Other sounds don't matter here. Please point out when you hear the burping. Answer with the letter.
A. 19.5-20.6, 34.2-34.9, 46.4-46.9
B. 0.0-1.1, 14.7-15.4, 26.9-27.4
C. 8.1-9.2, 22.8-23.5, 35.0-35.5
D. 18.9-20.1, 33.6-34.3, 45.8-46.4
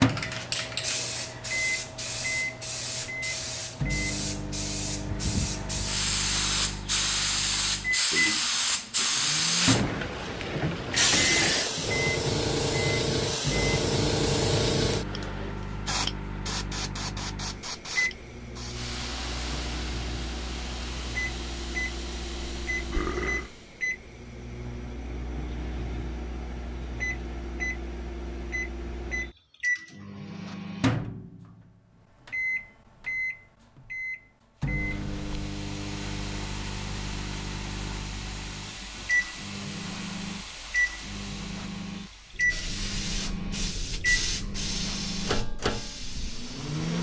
C.